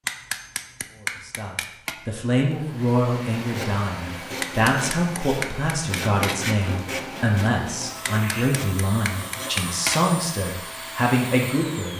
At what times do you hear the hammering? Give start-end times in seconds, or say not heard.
0.1-1.9, 4.4-6.4, 8.1-10.1.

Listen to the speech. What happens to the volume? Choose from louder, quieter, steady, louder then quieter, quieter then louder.
steady.